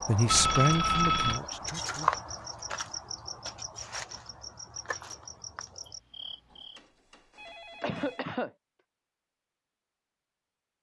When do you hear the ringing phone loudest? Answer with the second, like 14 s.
1 s.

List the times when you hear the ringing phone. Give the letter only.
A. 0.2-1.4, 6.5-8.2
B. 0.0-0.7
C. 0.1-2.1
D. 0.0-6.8
A.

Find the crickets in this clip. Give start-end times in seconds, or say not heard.
0.0-6.8.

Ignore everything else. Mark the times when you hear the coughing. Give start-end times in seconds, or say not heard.
7.8-8.5.